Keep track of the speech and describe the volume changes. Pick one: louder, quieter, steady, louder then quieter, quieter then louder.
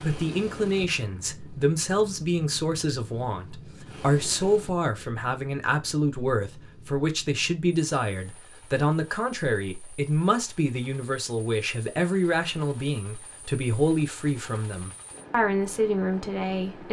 steady.